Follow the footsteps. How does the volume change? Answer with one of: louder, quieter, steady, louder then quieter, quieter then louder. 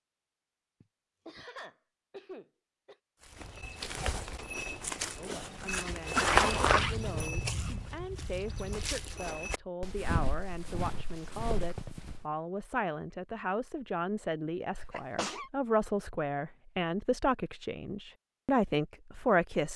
louder then quieter.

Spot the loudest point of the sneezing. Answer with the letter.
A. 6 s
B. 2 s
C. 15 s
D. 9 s
C.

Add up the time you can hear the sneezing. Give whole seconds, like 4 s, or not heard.
3 s.